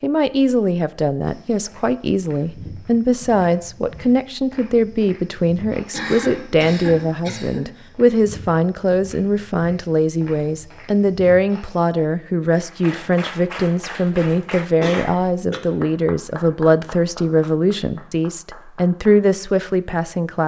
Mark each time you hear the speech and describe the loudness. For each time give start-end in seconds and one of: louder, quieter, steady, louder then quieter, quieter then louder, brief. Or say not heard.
0.0-20.4 steady.